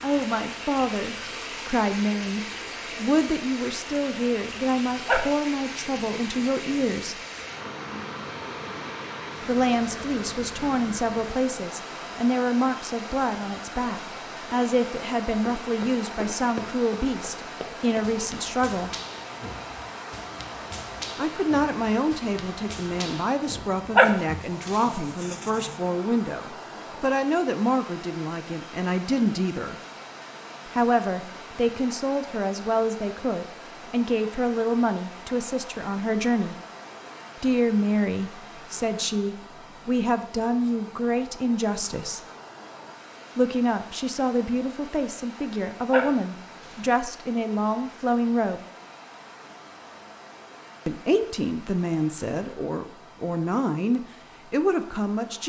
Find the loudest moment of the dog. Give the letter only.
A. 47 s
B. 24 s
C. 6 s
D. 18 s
B.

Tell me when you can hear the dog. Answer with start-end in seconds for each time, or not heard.
5.0-6.8, 23.9-25.9, 45.9-46.9.